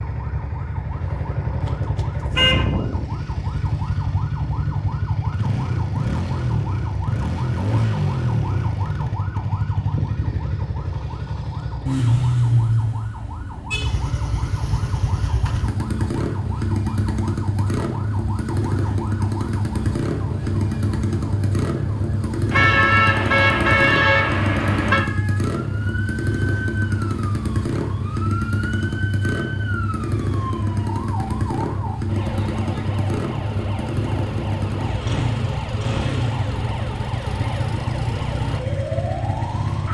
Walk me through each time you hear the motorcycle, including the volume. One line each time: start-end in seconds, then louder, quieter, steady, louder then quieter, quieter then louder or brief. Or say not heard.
0.0-39.8 steady.